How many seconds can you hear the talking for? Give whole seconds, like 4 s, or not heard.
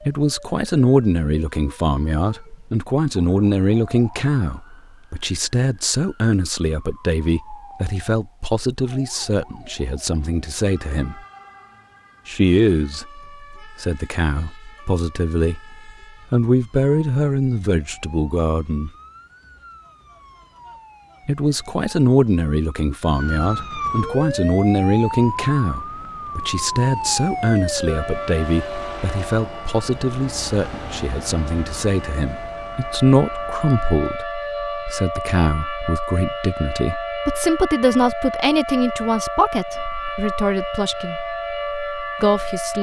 38 s.